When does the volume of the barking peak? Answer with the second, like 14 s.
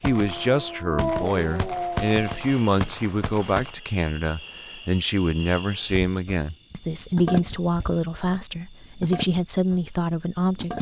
1 s.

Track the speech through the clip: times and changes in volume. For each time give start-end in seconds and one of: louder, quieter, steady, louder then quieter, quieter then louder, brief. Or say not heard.
0.0-10.7 steady.